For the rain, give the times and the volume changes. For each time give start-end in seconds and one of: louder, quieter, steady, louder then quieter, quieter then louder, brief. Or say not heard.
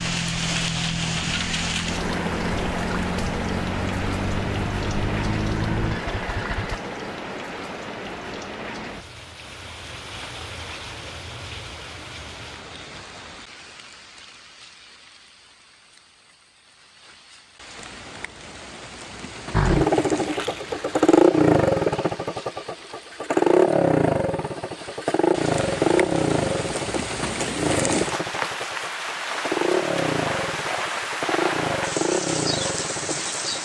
0.0-33.6 quieter then louder.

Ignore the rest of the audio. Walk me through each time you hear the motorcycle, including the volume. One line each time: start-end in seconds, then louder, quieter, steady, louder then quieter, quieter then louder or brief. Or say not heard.
0.0-6.8 steady
19.5-33.6 quieter.